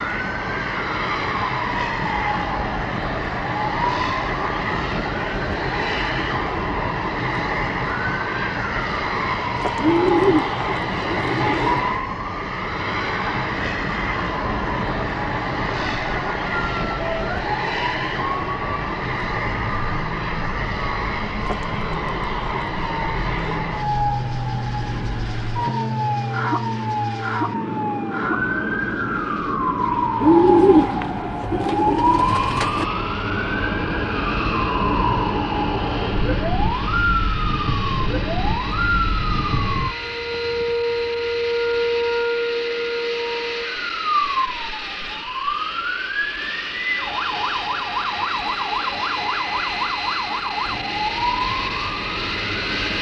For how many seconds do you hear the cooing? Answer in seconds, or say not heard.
5 s.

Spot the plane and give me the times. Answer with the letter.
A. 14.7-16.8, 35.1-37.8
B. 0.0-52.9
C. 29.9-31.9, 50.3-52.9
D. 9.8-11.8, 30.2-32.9
B.